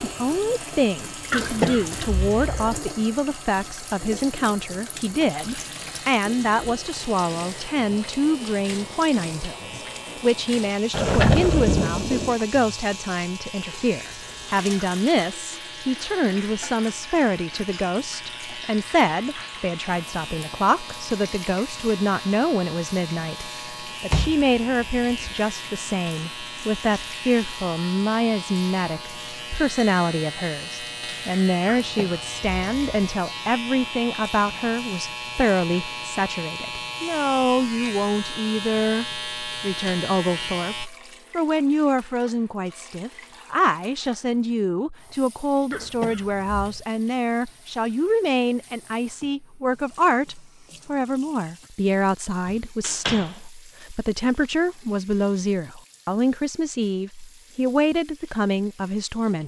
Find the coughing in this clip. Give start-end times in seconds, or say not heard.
1.3-2.8, 31.6-33.1, 45.7-46.9.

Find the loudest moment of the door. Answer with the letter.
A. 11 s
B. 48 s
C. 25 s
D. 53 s
A.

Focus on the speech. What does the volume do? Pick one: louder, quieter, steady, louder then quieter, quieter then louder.
steady.